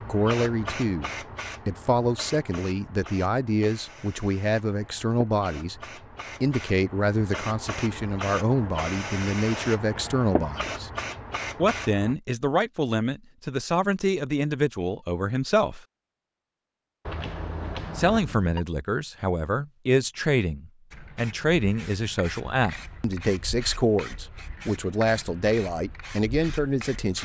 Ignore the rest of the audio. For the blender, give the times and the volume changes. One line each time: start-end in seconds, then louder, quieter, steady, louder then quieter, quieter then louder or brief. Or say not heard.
not heard.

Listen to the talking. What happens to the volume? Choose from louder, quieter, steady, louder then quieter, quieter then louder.
steady.